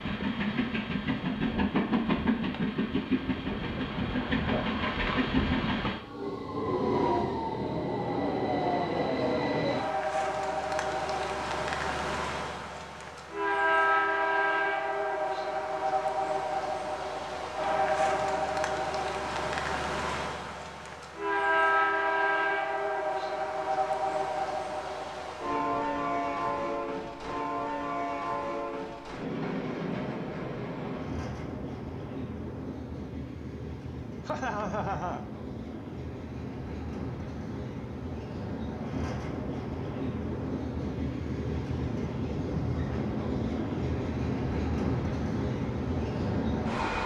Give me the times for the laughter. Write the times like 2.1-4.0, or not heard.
34.2-35.2.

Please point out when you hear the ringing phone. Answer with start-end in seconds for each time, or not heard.
not heard.